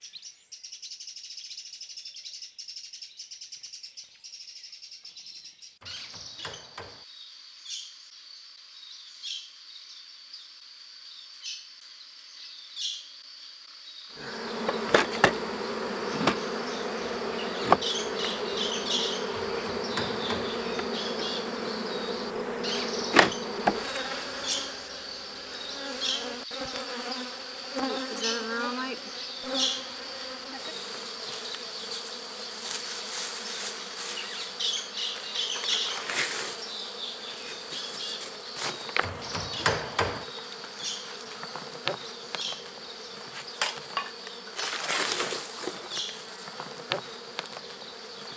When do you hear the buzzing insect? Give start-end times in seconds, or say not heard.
14.2-48.3.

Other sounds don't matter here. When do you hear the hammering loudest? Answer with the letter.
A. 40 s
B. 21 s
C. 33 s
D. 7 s
A.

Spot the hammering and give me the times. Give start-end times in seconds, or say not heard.
5.8-7.0, 19.5-20.6, 39.0-40.2.